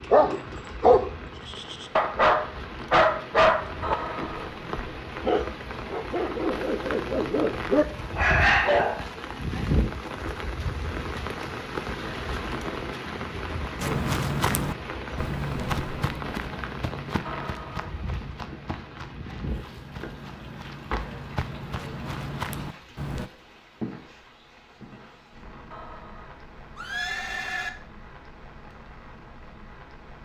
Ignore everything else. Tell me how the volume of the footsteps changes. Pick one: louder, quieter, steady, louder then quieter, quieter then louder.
quieter then louder.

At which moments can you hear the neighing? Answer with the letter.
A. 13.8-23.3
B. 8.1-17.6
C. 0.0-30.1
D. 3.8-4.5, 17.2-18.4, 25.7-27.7
D.